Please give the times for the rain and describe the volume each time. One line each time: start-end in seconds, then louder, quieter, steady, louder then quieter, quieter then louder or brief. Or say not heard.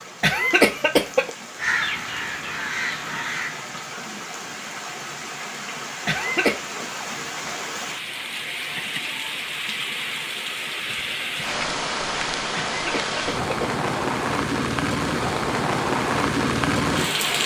0.0-17.4 louder.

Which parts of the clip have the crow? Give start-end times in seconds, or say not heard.
1.6-3.6.